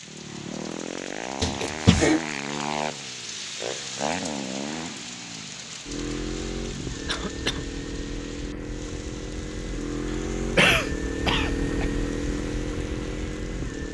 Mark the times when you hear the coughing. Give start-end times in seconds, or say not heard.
1.4-2.2, 7.0-7.7, 10.1-11.8.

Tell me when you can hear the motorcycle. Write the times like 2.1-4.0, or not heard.
0.0-13.8.